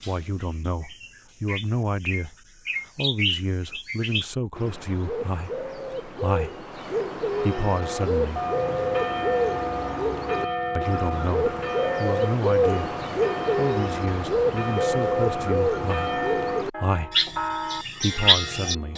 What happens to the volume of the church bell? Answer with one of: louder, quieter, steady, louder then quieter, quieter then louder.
steady.